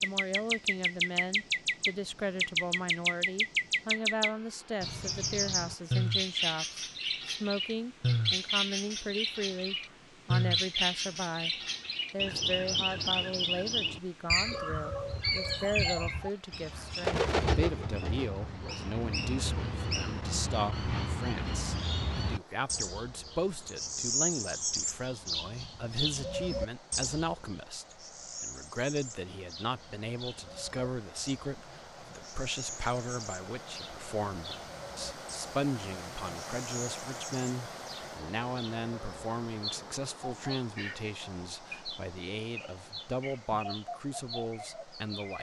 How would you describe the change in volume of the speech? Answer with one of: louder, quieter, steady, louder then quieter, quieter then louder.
steady.